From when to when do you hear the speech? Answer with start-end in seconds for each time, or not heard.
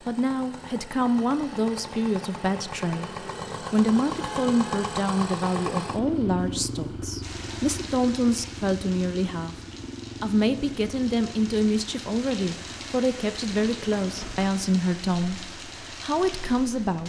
0.1-9.6, 10.2-17.0.